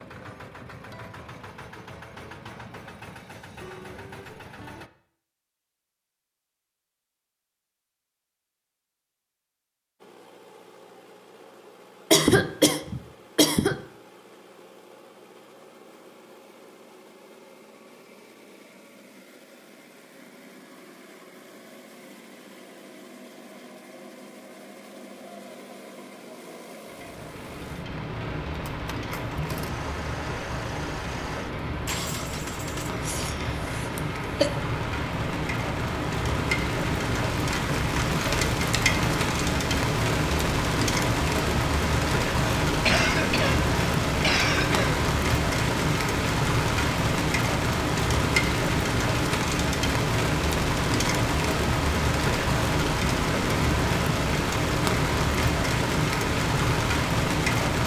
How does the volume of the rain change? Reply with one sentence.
The volume of the rain goes up.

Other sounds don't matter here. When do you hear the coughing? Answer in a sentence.
You can hear the coughing from 12.1 to 13.8 s, from 33.0 to 34.5 s and from 42.6 to 45.0 s.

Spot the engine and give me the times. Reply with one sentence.
You can hear the engine from 0.0 to 4.9 s and from 10.0 to 33.0 s.